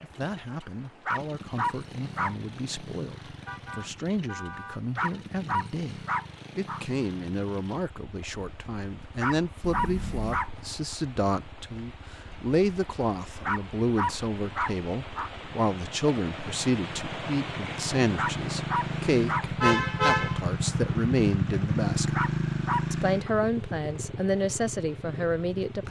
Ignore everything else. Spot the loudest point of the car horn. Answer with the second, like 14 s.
20 s.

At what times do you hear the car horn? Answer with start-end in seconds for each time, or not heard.
3.5-4.8, 9.6-10.4, 19.6-20.4.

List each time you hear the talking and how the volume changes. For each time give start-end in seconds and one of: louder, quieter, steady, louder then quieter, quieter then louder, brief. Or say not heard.
0.0-22.1 louder
22.9-25.8 brief.